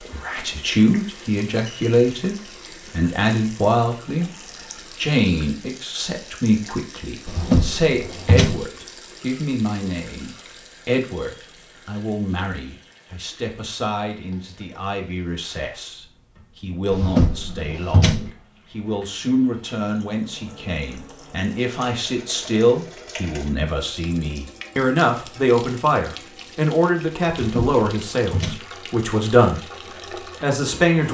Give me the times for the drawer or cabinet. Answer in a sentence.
You can hear the drawer or cabinet from 7.2 to 8.7 s, from 16.9 to 18.3 s and from 27.4 to 28.6 s.